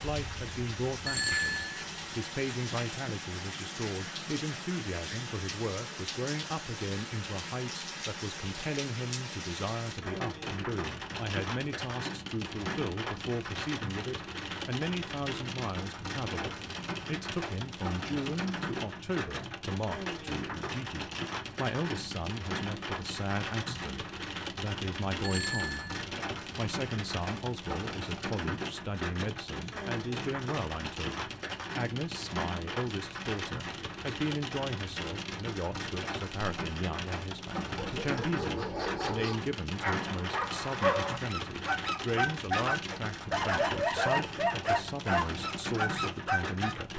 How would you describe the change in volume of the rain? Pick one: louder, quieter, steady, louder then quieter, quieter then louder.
steady.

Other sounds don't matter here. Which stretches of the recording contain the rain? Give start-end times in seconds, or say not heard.
0.0-46.9.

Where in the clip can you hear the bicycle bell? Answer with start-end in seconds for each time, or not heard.
1.1-1.9, 25.2-26.0.